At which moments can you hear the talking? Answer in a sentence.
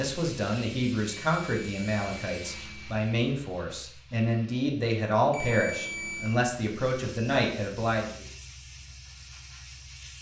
The talking can be heard from 0.0 to 8.2 s.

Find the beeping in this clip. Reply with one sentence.
You can hear the beeping from 1.2 to 3.0 s and from 5.3 to 6.3 s.